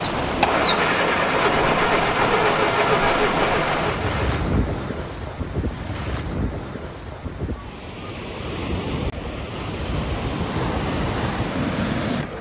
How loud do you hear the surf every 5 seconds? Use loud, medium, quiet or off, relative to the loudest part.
loud, medium, loud.